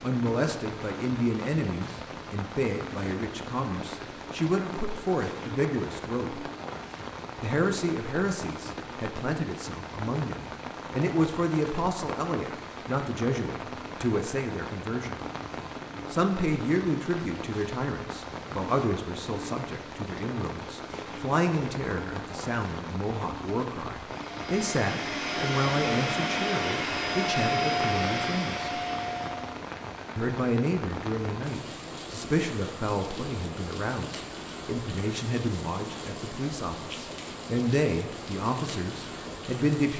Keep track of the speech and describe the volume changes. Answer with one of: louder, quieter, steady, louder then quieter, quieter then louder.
steady.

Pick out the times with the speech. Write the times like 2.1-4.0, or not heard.
0.0-6.4, 7.4-15.2, 16.1-28.8, 30.1-39.9.